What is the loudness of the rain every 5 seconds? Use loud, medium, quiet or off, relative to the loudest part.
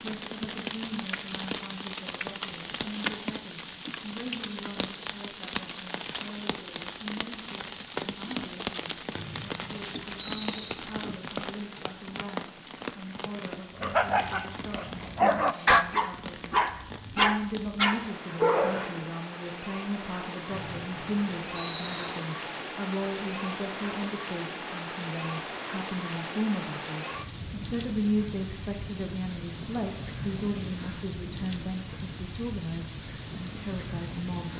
loud, loud, loud, medium, loud, loud, loud.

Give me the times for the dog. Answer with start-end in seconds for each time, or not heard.
13.8-19.1.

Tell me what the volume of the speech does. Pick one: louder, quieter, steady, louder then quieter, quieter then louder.
louder.